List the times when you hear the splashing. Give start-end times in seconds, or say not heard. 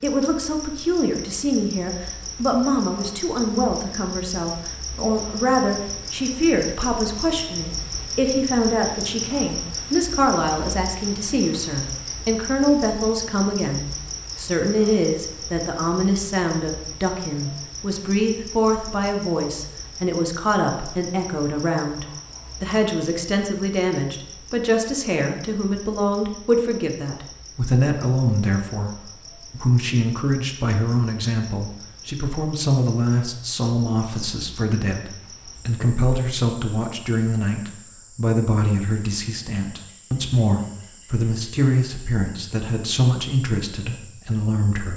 not heard.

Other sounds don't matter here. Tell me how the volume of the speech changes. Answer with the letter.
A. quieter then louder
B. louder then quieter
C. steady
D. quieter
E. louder
C.